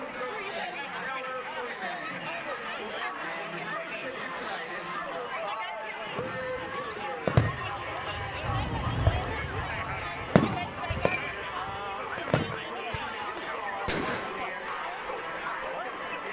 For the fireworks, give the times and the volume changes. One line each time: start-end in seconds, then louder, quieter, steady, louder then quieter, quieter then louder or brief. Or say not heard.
6.2-14.4 quieter.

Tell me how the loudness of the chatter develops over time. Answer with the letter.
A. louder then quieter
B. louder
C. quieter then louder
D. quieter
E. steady
E.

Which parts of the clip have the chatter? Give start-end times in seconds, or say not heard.
0.0-16.2.